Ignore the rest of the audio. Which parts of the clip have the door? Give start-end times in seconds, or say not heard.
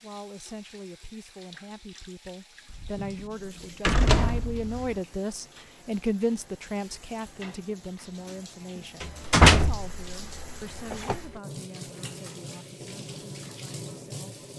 2.7-5.0, 9.0-11.2.